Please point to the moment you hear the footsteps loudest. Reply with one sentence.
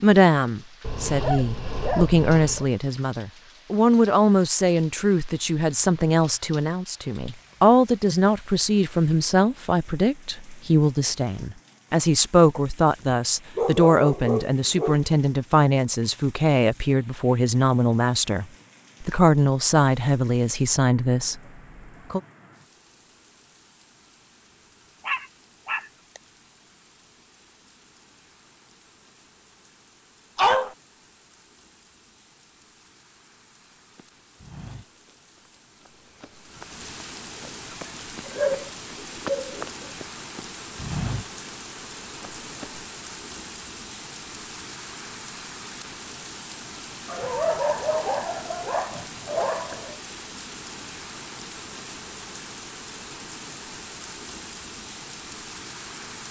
The loudest moment of the footsteps is at 41 seconds.